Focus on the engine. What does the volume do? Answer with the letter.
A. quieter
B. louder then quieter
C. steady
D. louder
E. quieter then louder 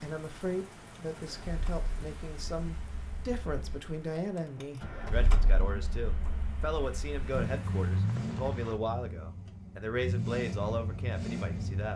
D.